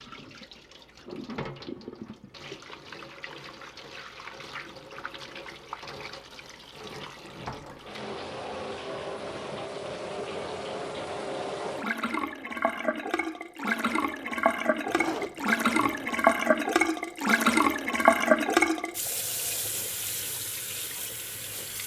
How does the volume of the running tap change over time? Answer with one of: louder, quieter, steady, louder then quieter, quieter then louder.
louder.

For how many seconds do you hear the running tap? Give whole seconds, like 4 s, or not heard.
22 s.